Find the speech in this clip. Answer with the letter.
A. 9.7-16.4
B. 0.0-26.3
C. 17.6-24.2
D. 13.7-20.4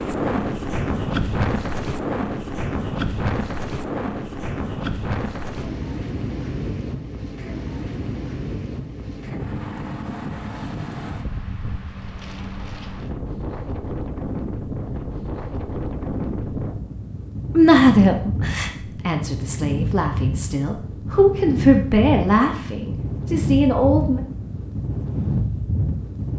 C.